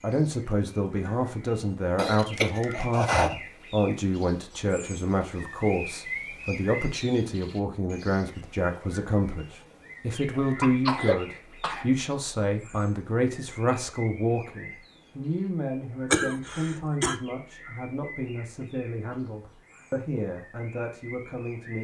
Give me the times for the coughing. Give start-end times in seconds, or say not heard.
1.9-3.4, 10.3-11.9, 16.1-17.1.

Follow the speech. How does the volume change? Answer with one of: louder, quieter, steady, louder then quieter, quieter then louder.
quieter.